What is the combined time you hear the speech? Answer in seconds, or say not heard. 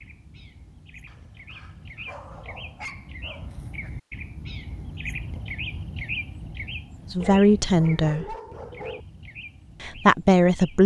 2 s.